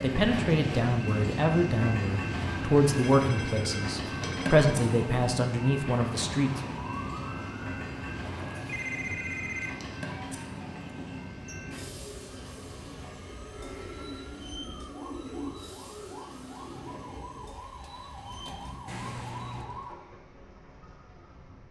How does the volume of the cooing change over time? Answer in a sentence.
The volume of the cooing goes up, then down.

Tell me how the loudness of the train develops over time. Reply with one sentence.
The loudness of the train goes down.